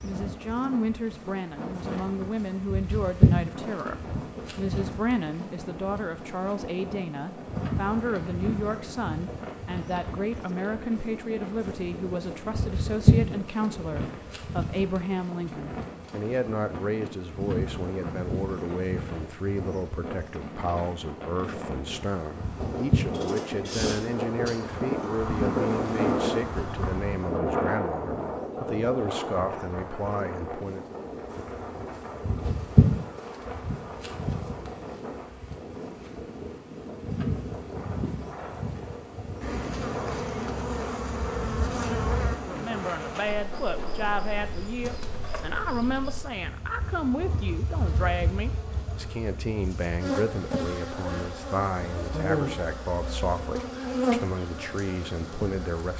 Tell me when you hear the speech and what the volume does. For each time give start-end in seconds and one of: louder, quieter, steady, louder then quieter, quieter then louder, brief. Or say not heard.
0.0-30.9 steady
42.4-55.9 steady.